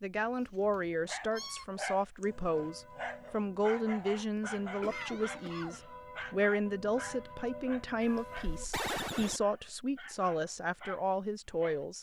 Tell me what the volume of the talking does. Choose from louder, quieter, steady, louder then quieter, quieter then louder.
steady.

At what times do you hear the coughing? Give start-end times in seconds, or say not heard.
4.3-5.8.